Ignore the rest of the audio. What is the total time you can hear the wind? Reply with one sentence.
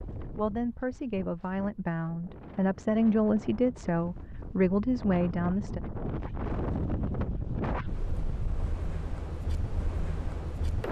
You can hear the wind for 11 seconds altogether.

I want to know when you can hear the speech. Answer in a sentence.
You can hear the speech from 0.3 to 5.8 s.